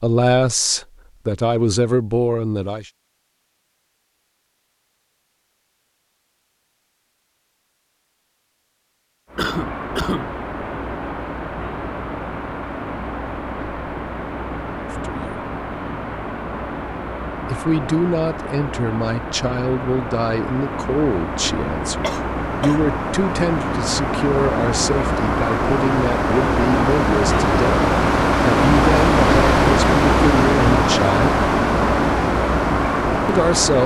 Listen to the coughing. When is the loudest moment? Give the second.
10 s.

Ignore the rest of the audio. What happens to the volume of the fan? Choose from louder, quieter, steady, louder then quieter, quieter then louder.
louder.